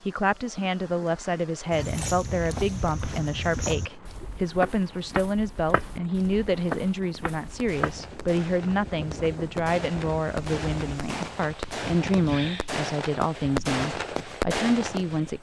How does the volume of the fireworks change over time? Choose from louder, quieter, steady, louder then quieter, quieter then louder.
louder.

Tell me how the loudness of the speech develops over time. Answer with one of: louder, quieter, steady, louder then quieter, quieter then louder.
steady.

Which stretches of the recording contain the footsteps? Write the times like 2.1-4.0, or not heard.
1.7-8.0.